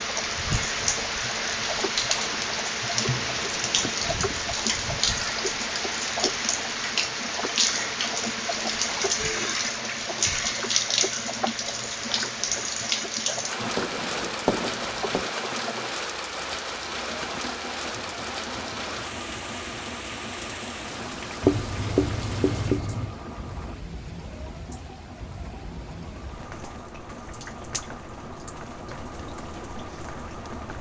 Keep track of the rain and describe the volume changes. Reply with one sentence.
The loudness of the rain goes down.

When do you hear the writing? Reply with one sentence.
You can hear the writing from 3.0 to 4.2 s, from 13.6 to 15.3 s and from 21.4 to 23.1 s.